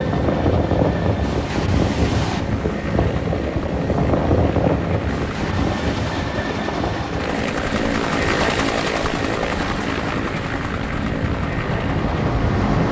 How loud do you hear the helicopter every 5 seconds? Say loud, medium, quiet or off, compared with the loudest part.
medium, loud, loud.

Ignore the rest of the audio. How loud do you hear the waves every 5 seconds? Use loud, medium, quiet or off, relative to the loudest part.
loud, medium, loud.